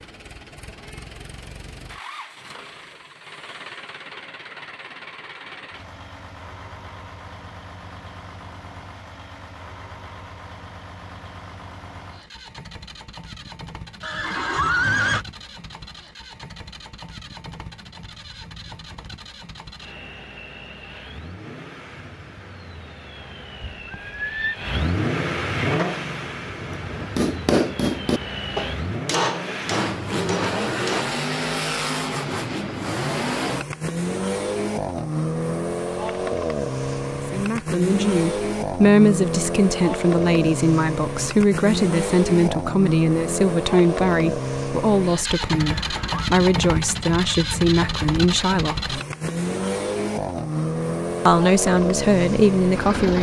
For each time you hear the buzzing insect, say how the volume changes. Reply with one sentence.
You can't hear the buzzing insect here.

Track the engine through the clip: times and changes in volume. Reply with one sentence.
You can hear the engine from 0.0 to 53.1 s, getting louder.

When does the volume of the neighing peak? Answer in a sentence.
The loudest moment of the neighing is at 15 seconds.